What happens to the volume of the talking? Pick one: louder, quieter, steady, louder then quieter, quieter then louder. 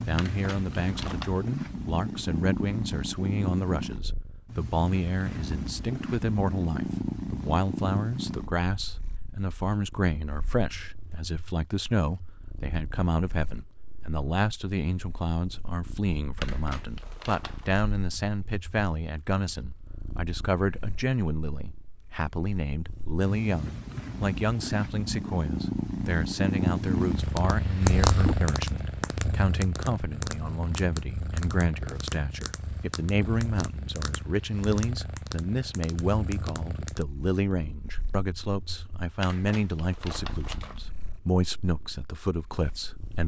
steady.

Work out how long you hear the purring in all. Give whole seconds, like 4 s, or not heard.
43 s.